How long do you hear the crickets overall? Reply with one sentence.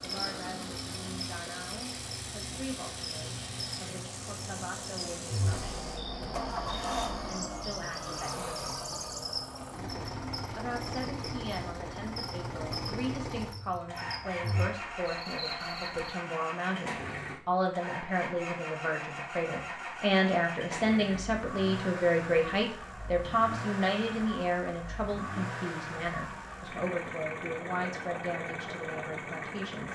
You can hear the crickets for 16 seconds altogether.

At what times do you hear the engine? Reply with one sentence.
You can hear the engine from 0.0 to 29.9 s.